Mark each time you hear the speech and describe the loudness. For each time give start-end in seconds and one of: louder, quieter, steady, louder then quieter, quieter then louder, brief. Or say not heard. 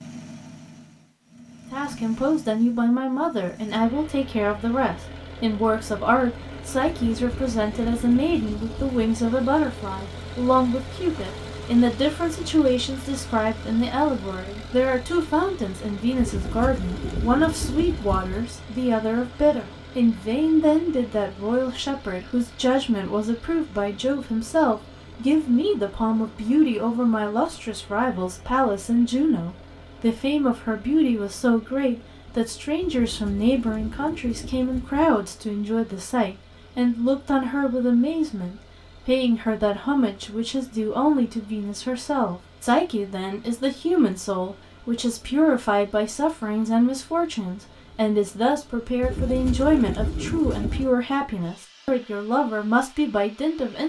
1.7-53.8 steady.